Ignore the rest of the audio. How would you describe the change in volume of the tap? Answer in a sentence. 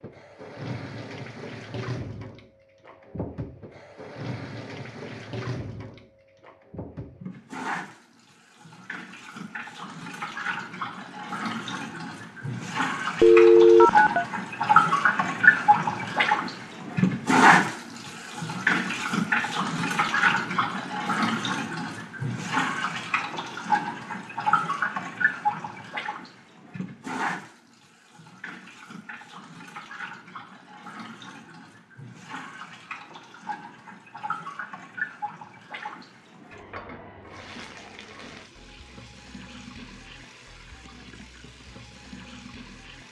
The volume of the tap goes up, then down.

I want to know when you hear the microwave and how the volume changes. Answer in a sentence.
The microwave can't be heard in this clip.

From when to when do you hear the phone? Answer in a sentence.
The phone can be heard from 13.2 to 14.2 s.